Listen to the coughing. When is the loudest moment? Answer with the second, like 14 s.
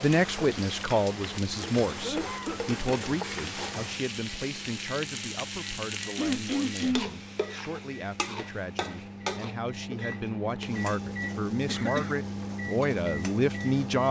7 s.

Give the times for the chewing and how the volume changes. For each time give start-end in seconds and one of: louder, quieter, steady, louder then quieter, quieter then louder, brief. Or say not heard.
not heard.